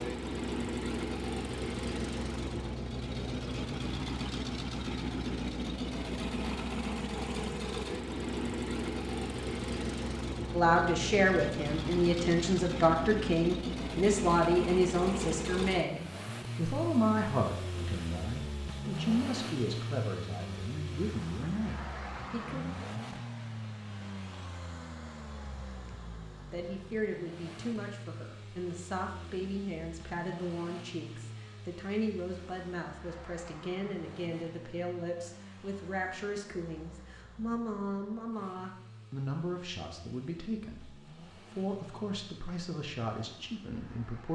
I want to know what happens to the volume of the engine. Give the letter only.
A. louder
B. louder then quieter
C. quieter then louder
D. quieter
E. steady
D.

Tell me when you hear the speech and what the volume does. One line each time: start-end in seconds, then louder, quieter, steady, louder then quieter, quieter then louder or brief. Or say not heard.
10.5-22.6 quieter
26.5-44.2 steady.